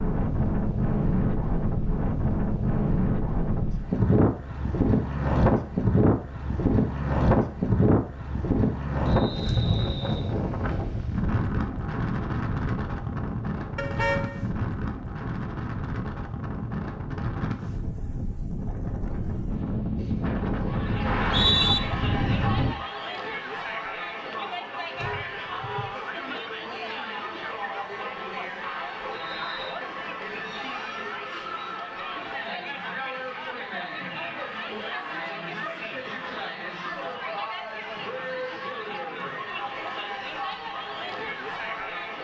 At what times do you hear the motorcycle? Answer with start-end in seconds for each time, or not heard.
not heard.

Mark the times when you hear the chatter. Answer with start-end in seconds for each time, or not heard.
20.6-42.1.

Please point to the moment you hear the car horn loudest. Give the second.
14 s.